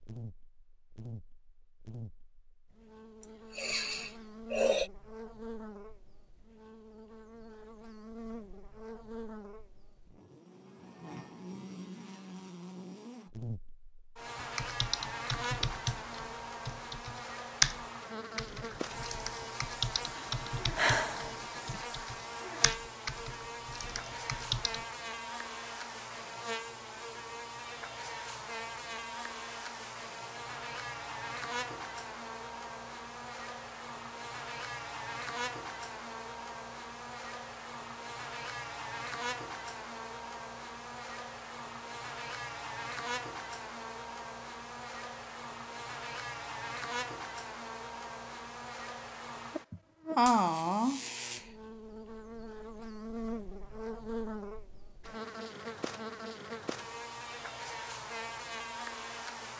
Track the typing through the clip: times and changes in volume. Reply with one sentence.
The typing can be heard from 14.3 to 24.9 s, getting louder then quieter.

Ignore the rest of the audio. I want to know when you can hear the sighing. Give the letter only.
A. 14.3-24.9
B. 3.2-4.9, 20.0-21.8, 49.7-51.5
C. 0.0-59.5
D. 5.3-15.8
B.